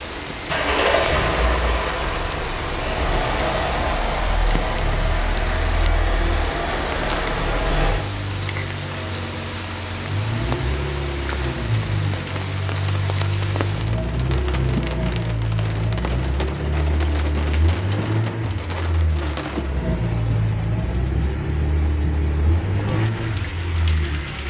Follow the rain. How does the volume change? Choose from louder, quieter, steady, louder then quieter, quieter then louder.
steady.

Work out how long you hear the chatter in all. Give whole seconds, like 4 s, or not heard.
not heard.